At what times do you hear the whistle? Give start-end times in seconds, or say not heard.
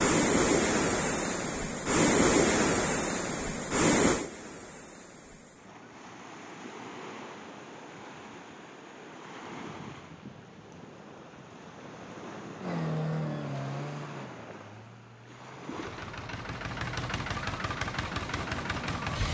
not heard.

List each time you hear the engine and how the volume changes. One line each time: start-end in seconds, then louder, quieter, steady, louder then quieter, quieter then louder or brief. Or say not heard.
12.6-19.2 quieter then louder.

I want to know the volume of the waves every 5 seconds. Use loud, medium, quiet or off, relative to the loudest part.
loud, quiet, quiet, quiet.